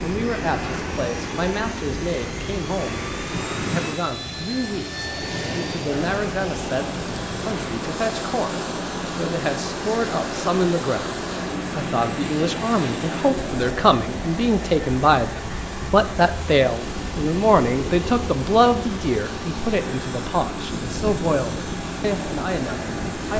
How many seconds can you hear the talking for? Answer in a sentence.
You can hear the talking for 23 seconds altogether.